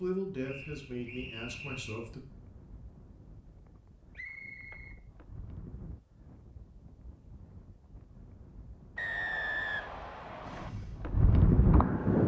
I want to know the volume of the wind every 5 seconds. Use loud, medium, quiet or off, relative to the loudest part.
quiet, quiet, loud.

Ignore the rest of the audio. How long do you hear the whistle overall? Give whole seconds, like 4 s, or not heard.
4 s.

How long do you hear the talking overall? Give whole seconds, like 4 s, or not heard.
2 s.